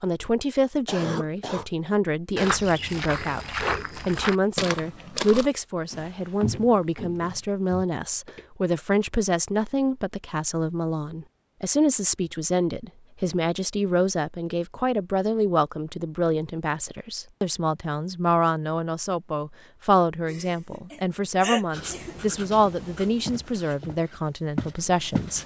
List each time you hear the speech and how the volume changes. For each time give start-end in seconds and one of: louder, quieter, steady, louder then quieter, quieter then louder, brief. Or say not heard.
0.0-25.4 steady.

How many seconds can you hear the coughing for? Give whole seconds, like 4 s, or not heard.
3 s.